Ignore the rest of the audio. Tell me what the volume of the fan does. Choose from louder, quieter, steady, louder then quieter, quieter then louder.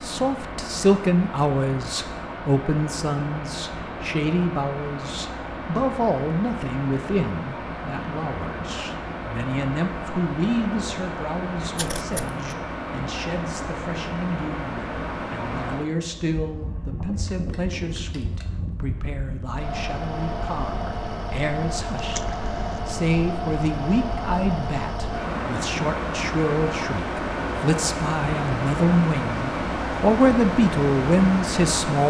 louder.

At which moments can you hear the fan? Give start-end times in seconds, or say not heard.
0.0-32.0.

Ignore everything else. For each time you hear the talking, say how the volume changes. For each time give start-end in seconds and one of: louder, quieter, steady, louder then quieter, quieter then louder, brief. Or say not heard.
0.0-32.0 quieter then louder.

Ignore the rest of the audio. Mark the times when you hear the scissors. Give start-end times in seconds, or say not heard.
11.8-12.4, 21.9-22.8.